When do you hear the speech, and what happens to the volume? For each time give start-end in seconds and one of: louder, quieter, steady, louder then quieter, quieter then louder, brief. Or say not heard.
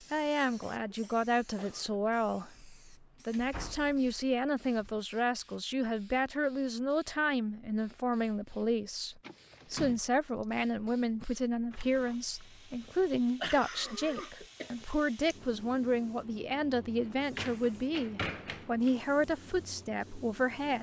0.1-20.7 steady.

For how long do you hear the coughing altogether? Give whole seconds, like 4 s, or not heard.
3 s.